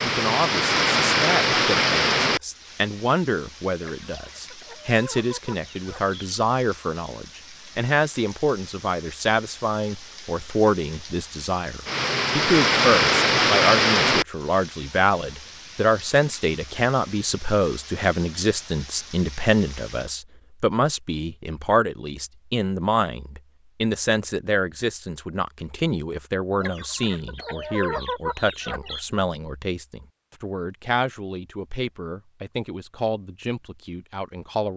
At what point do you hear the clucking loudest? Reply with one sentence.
The volume of the clucking peaks at 28 seconds.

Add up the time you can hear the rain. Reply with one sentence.
You can hear the rain for 20 seconds altogether.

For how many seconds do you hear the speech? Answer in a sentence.
You can hear the speech for 35 seconds altogether.